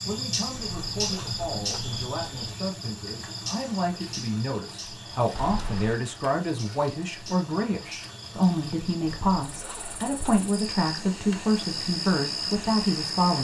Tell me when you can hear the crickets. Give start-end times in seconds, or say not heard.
0.0-13.3.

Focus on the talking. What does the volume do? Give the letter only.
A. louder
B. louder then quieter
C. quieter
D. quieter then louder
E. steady
A.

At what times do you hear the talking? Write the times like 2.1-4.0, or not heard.
0.0-13.3.